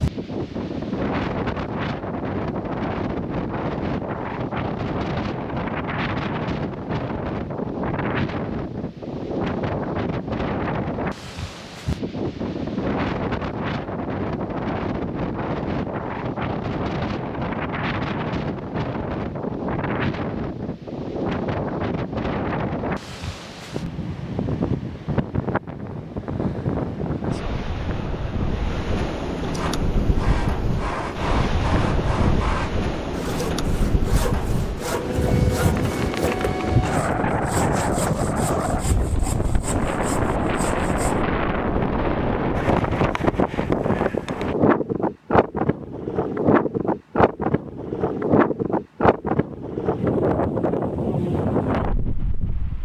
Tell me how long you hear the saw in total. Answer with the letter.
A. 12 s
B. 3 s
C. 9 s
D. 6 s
A.